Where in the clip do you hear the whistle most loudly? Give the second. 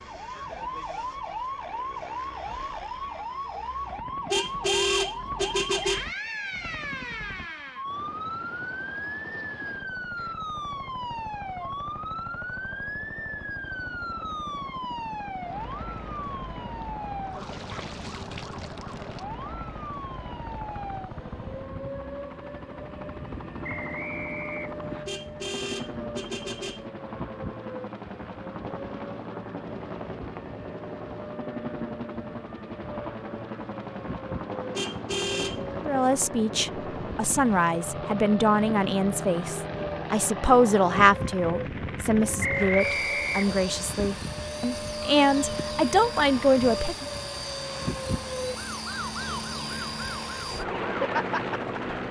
43 s.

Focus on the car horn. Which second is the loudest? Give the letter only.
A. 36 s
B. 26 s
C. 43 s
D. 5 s
D.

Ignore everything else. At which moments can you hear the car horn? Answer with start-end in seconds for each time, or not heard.
4.3-6.1, 25.1-26.9, 34.8-35.8.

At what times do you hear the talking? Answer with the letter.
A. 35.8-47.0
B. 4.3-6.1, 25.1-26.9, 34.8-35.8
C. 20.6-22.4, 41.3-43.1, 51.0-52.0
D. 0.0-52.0
A.